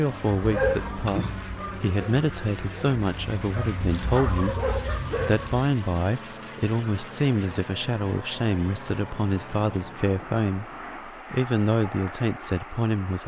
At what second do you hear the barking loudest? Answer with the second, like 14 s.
1 s.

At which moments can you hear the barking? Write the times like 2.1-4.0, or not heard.
0.1-5.7.